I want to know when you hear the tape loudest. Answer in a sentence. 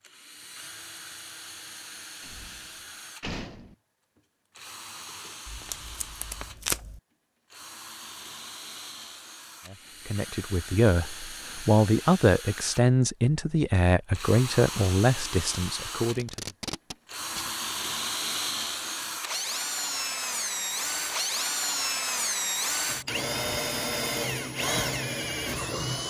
The loudest moment of the tape is at 7 seconds.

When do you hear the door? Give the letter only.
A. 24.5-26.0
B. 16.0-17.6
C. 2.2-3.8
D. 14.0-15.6
C.